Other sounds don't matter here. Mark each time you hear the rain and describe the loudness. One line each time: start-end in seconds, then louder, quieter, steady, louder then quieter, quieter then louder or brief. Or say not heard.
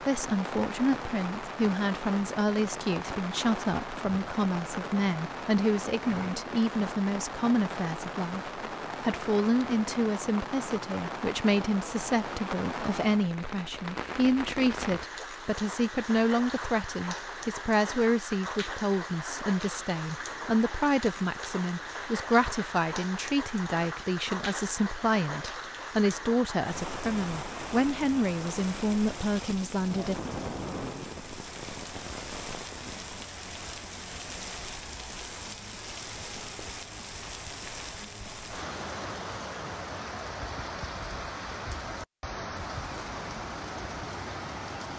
0.0-44.9 steady.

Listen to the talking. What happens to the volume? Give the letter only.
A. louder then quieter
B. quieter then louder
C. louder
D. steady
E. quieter
D.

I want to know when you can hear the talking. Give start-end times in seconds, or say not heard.
0.1-30.1.